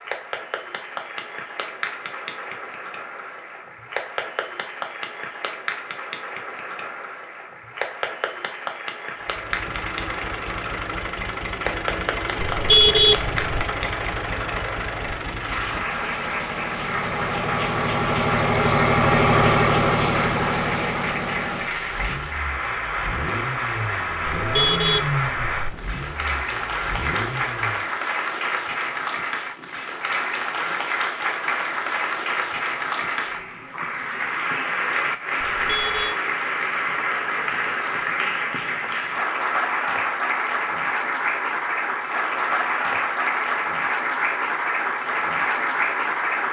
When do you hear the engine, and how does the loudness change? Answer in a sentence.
The engine can be heard from 9.2 to 27.9 s, getting louder then quieter.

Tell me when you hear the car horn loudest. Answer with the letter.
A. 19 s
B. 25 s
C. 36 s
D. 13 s
D.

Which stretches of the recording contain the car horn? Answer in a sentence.
You can hear the car horn from 12.4 to 13.7 s, from 24.4 to 25.8 s and from 35.4 to 36.1 s.